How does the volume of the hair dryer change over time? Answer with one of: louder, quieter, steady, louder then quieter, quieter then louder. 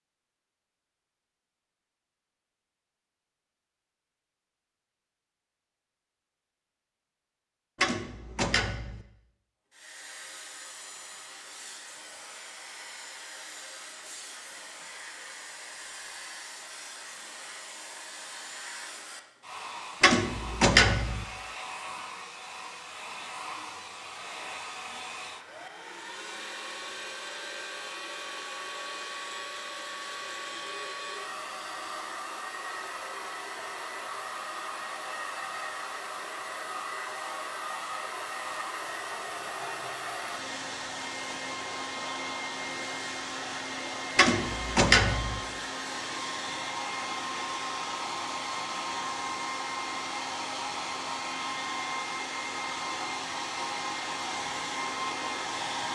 louder.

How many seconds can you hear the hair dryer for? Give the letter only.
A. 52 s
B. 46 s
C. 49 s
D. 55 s
B.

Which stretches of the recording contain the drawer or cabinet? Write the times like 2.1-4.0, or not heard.
7.8-9.1, 20.0-21.2, 44.1-45.4.